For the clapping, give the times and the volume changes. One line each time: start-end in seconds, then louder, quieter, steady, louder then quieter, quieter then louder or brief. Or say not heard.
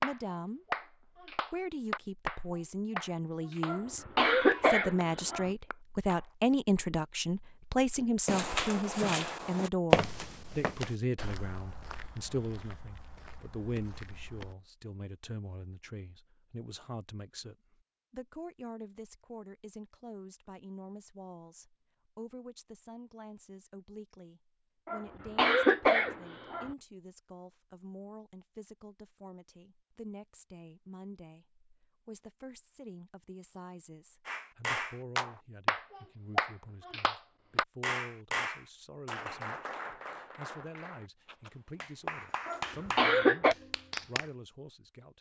0.0-6.3 quieter
34.2-44.2 quieter then louder.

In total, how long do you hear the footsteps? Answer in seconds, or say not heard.
6 s.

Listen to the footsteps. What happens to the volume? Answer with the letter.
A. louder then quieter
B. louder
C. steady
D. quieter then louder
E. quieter
A.